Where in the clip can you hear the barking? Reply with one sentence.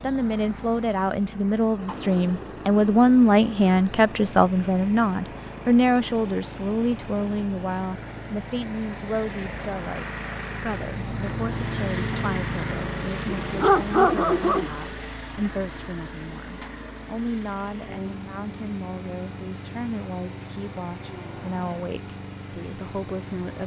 The barking can be heard from 13.2 to 14.8 s.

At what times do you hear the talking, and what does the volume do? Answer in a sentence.
You can hear the talking from 0.0 to 23.6 s, getting quieter.